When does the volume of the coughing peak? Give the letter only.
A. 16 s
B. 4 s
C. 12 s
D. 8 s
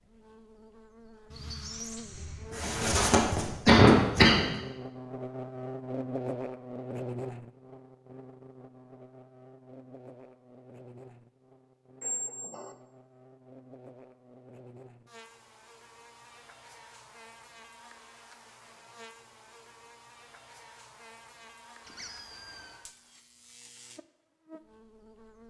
B.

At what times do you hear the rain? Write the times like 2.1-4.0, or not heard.
not heard.